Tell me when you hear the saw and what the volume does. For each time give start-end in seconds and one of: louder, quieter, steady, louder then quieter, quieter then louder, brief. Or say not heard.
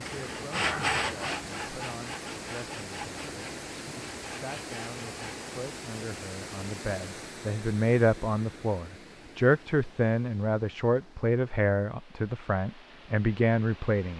0.0-5.5 quieter.